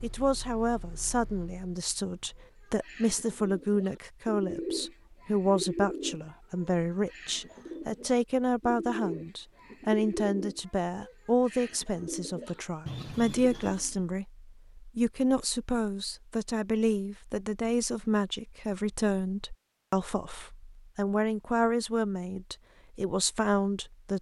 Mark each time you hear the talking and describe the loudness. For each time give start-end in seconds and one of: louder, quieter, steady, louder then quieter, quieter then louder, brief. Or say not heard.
0.0-24.1 steady.